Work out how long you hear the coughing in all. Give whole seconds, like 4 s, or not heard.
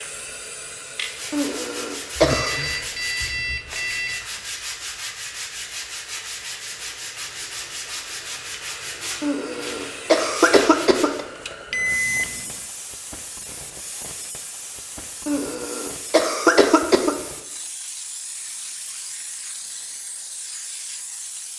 5 s.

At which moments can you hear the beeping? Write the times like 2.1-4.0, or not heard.
2.1-4.2, 11.7-12.7.